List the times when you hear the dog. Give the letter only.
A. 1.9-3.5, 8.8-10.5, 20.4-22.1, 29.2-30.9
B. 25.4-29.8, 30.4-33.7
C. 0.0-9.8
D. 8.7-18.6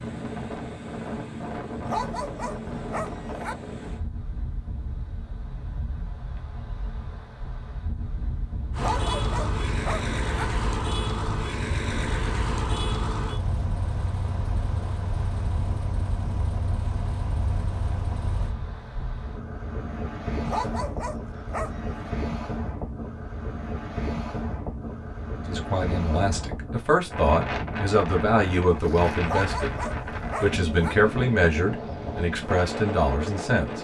A.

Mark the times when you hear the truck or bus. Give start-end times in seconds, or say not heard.
8.7-18.6.